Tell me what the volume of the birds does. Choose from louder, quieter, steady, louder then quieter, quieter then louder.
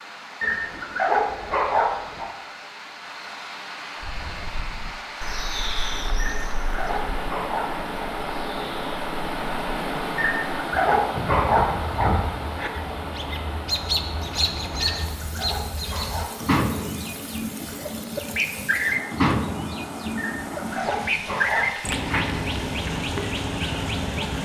louder.